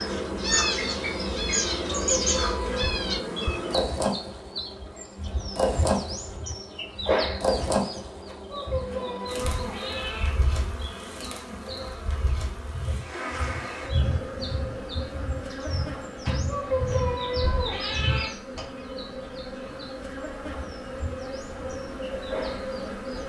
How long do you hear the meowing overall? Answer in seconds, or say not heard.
5 s.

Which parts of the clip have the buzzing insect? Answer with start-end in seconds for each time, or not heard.
0.0-23.2.